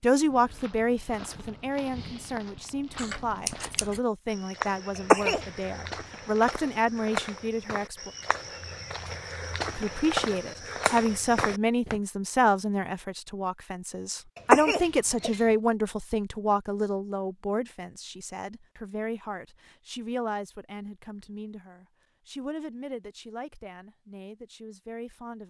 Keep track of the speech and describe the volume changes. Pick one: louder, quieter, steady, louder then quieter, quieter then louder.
quieter.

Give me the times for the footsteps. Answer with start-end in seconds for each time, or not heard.
0.1-12.0.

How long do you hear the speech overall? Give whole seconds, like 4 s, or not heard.
24 s.